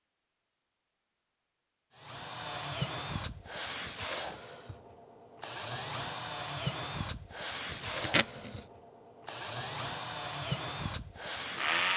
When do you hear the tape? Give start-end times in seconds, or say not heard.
7.7-8.7.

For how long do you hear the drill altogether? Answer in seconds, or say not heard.
10 s.